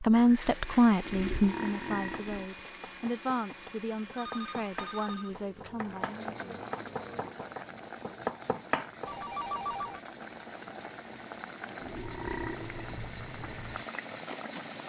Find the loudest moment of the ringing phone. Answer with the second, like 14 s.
10 s.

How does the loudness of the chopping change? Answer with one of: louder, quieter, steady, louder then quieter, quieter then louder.
louder.